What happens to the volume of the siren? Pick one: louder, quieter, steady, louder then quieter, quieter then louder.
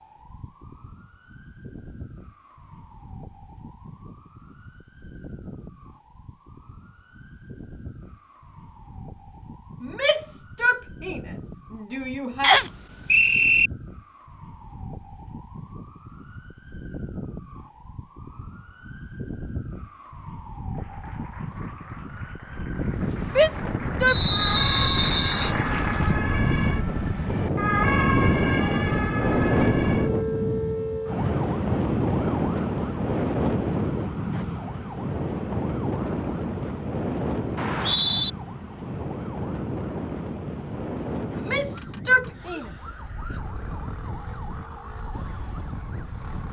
louder then quieter.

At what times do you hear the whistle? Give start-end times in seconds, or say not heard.
12.4-13.7, 24.1-25.5, 37.5-38.3.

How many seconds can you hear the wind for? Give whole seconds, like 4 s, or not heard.
24 s.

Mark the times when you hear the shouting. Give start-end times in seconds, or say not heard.
9.8-12.6, 23.2-24.1, 41.3-42.7.